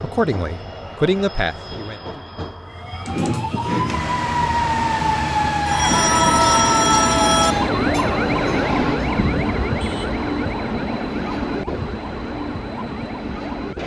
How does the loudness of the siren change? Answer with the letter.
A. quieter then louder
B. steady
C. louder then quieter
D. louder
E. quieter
E.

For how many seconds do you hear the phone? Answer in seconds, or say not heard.
2 s.